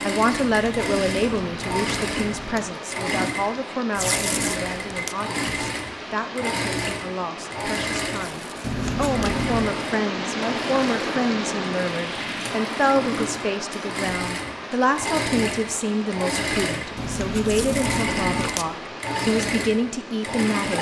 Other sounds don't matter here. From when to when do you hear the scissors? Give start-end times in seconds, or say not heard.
0.4-2.8, 8.6-9.8, 16.9-18.6.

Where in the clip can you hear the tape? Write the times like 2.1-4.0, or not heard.
4.0-5.2, 8.1-9.3, 17.4-18.6.